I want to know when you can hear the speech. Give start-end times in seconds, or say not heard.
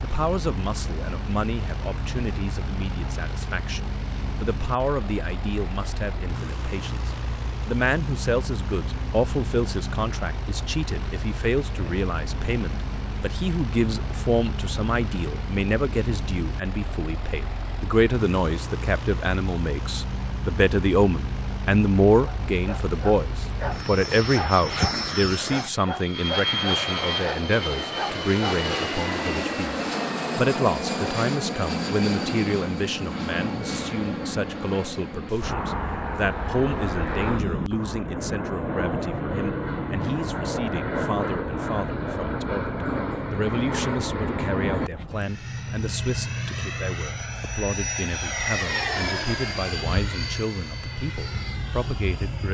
0.0-52.4.